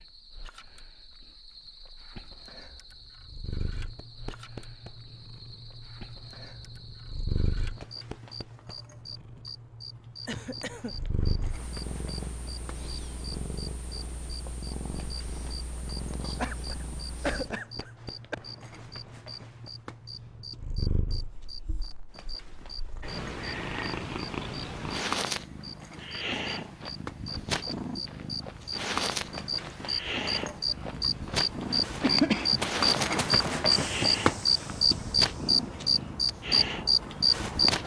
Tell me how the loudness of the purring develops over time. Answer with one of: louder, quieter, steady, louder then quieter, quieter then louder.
louder.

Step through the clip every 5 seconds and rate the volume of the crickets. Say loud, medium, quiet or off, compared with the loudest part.
quiet, quiet, quiet, quiet, quiet, quiet, loud, loud.